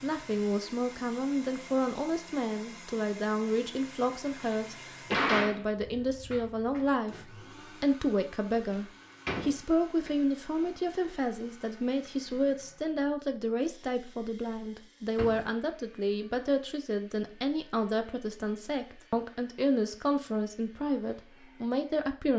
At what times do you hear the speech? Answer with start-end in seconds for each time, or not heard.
0.0-22.3.